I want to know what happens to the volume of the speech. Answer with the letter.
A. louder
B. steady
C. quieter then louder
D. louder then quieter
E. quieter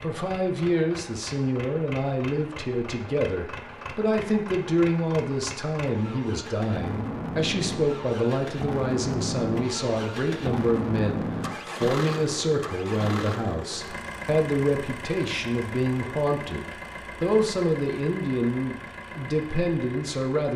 B.